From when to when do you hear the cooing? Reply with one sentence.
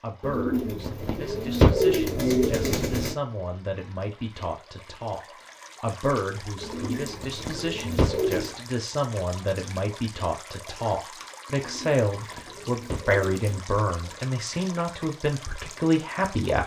The cooing can be heard from 0.2 to 3.1 s, from 6.6 to 8.6 s and from 11.5 to 13.6 s.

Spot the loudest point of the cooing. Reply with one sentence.
The volume of the cooing peaks at 2 seconds.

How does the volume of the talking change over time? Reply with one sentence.
The volume of the talking goes up.